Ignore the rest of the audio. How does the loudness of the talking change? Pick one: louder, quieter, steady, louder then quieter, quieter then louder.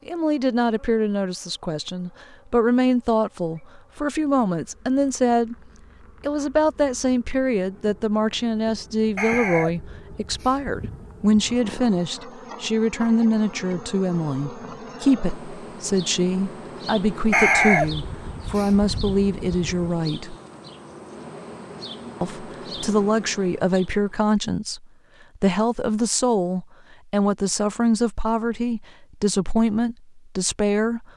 steady.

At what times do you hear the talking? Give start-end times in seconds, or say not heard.
0.1-5.5, 6.2-20.4, 22.2-31.1.